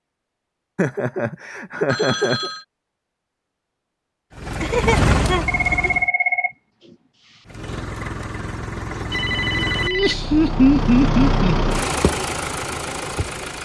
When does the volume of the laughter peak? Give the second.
11 s.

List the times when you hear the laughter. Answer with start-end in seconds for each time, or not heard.
0.8-2.5, 4.6-5.9, 9.8-11.5.